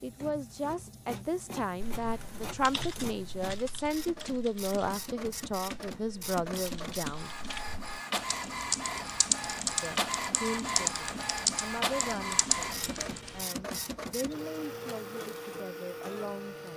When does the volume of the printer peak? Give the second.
10 s.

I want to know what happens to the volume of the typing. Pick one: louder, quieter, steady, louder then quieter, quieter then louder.
quieter then louder.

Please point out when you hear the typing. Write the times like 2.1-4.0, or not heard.
1.8-13.4.